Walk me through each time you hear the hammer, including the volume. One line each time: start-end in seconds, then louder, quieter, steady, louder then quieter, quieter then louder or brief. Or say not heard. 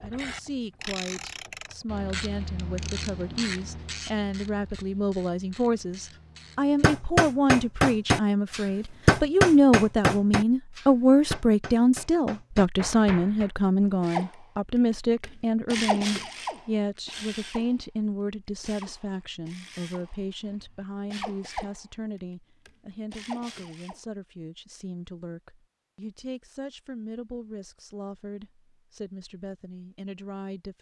6.8-13.5 quieter.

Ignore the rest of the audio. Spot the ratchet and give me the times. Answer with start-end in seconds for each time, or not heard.
0.0-6.9, 14.0-17.8, 18.4-24.0.